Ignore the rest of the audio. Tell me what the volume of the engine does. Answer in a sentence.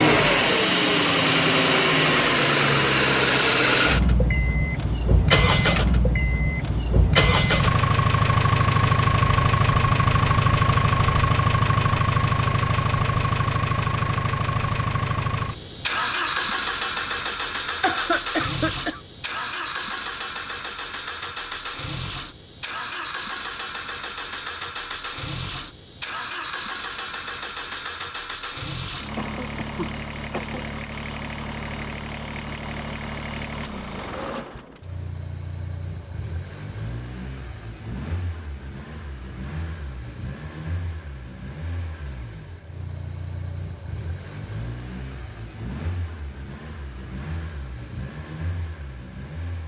The loudness of the engine goes down.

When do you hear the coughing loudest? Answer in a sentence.
The loudest moment of the coughing is at 18 seconds.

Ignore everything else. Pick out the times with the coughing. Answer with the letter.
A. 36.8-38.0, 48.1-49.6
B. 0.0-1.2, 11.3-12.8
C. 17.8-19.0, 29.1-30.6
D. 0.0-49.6
C.